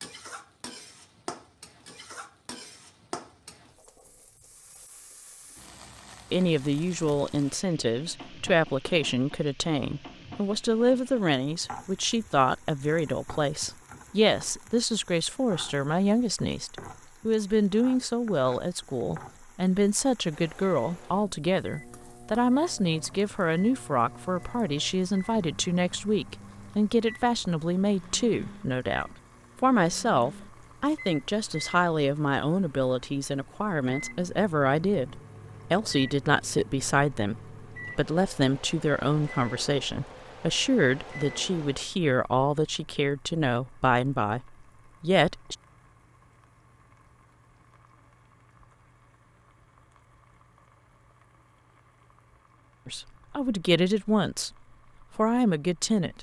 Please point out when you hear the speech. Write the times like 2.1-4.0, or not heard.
6.3-45.5, 52.9-54.5, 55.1-56.1.